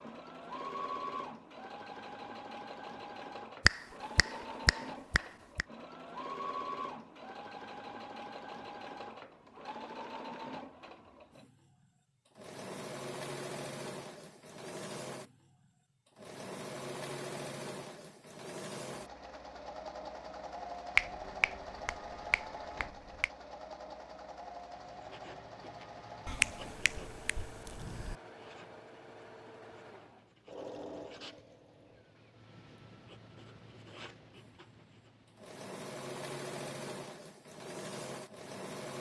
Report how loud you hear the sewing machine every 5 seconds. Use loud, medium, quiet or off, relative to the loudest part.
loud, loud, loud, loud, loud, medium, medium, loud.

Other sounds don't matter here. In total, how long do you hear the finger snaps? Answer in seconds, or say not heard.
6 s.